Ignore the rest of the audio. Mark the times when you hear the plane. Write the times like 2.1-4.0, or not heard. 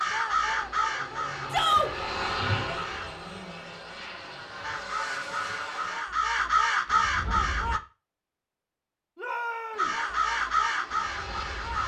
0.0-6.0, 9.7-11.8.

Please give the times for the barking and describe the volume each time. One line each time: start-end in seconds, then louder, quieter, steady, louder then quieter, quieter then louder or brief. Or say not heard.
not heard.